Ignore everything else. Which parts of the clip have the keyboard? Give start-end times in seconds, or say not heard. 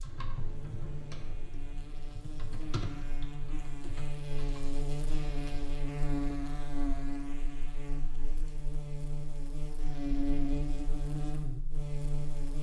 0.0-5.7.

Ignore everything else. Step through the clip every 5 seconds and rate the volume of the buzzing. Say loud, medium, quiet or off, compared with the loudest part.
medium, loud, loud.